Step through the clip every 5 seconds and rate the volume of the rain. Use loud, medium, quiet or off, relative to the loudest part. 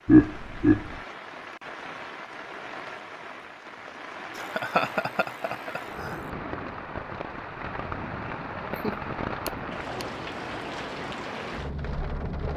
medium, loud, loud.